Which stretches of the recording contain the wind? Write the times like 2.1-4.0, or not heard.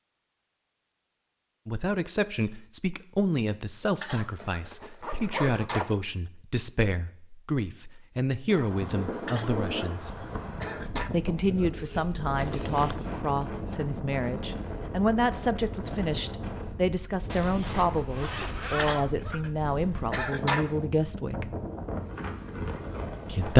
8.4-23.5.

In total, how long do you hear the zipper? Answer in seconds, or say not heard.
4 s.